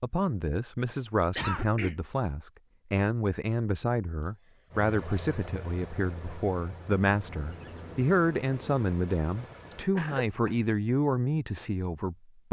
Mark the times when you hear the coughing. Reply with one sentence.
You can hear the coughing from 1.4 to 1.9 s, from 4.2 to 5.3 s and from 9.9 to 10.6 s.